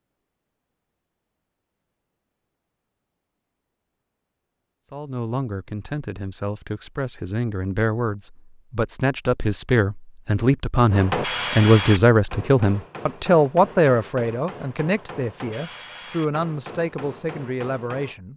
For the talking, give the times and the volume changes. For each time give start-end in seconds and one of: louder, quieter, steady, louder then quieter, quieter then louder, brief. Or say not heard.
4.9-18.3 louder then quieter.